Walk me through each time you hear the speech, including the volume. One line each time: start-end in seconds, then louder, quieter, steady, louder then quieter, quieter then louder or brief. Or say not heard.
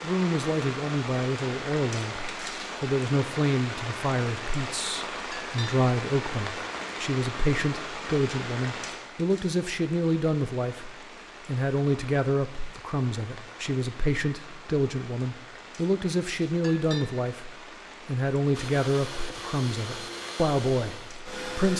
0.0-21.7 steady.